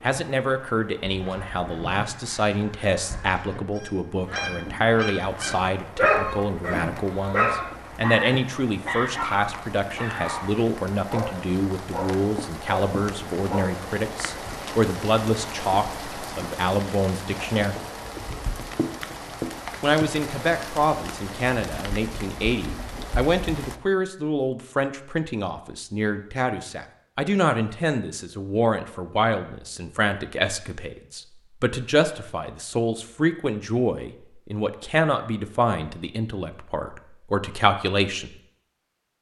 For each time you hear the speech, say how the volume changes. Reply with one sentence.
You can hear the speech from 0.0 to 17.8 s, at a steady volume; and from 19.8 to 38.4 s, at a steady volume.